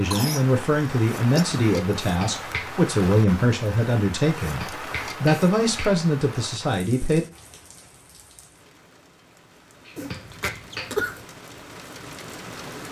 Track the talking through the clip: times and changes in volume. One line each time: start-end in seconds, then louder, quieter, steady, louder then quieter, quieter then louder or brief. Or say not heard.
0.0-7.2 steady.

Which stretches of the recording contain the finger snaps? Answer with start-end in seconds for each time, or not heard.
2.0-2.7, 4.4-6.0, 9.8-10.9.